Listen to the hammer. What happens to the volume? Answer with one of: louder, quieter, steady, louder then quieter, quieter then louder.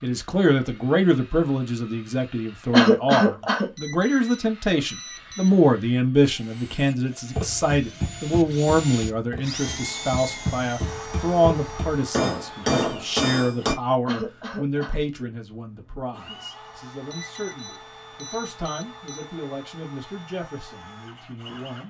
quieter then louder.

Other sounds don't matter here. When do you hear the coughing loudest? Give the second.
3 s.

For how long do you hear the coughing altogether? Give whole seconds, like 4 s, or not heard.
2 s.